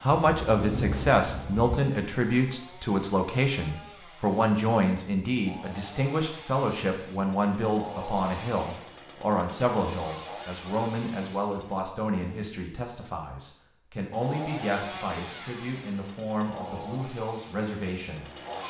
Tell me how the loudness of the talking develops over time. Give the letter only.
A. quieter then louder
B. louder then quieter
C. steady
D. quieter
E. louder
D.